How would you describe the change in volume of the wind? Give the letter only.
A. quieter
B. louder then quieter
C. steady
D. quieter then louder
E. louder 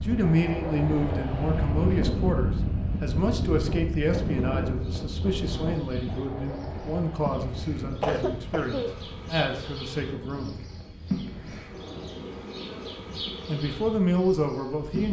A.